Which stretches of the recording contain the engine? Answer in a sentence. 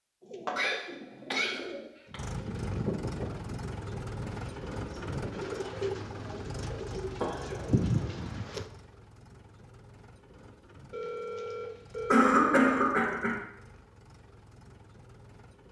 The engine can be heard from 2.1 to 15.6 s.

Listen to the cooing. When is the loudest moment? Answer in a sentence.
The loudest moment of the cooing is at 8 seconds.